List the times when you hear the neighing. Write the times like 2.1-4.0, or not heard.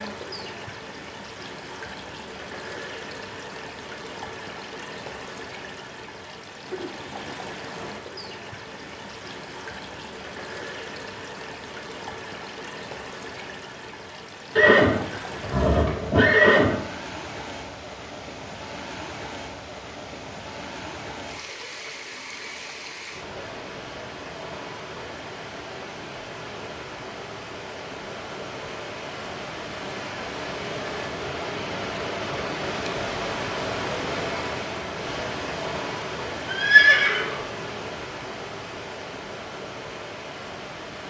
14.6-16.9, 36.5-37.5.